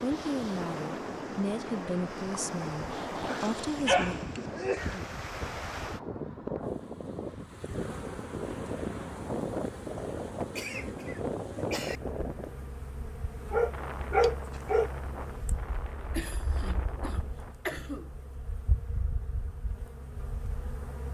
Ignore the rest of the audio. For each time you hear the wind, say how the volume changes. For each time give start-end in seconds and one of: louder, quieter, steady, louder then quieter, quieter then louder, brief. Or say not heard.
0.0-17.6 quieter.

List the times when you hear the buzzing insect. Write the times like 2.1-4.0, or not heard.
6.6-21.0.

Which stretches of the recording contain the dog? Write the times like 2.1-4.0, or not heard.
3.4-4.4, 13.5-14.9.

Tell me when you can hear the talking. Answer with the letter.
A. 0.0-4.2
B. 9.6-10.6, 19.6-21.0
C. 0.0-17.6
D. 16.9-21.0
A.